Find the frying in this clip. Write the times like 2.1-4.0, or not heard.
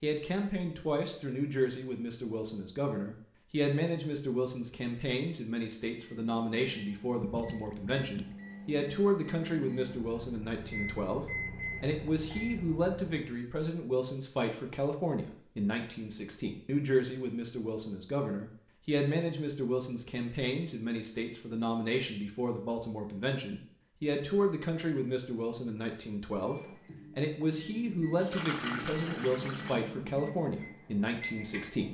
not heard.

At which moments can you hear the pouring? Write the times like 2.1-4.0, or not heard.
7.2-8.4, 28.1-29.8.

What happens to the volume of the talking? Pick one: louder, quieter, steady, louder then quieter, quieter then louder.
steady.